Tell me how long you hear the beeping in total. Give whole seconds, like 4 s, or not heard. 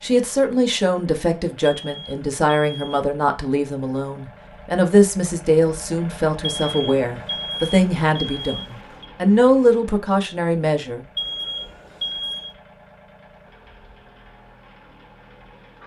5 s.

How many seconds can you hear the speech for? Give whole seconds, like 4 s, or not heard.
11 s.